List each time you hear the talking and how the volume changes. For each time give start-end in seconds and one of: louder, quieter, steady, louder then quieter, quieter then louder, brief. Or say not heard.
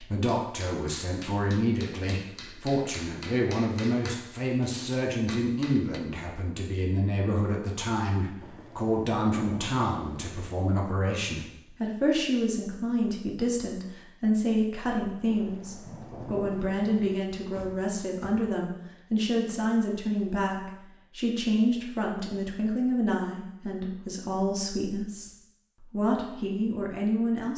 0.0-27.5 steady.